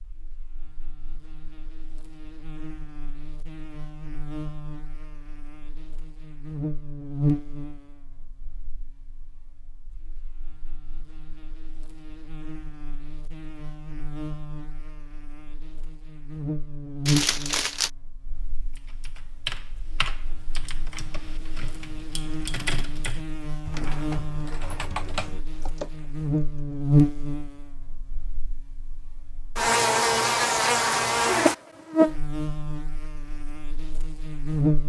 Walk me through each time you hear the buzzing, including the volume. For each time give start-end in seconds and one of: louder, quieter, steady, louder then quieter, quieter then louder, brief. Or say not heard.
0.0-34.8 louder.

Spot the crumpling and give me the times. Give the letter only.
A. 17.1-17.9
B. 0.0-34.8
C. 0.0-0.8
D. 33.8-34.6
A.